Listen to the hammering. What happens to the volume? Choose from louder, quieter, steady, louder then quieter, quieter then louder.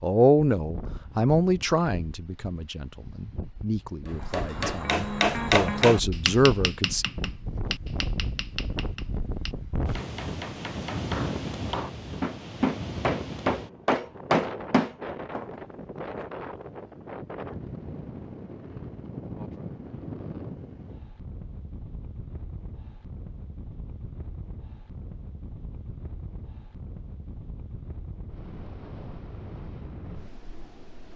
quieter then louder.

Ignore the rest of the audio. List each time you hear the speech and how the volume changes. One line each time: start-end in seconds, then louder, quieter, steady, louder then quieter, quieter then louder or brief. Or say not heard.
0.0-7.0 quieter then louder.